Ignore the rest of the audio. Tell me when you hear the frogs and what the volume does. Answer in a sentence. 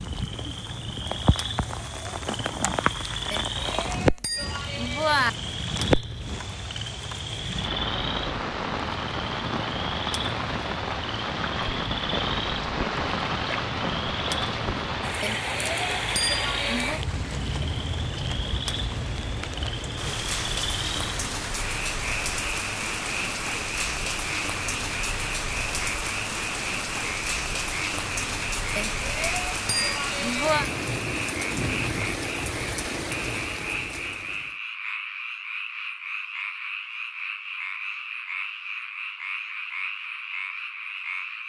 You can hear the frogs from 0.0 to 41.4 s, at a steady volume.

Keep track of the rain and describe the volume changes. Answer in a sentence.
The loudness of the rain stays about the same.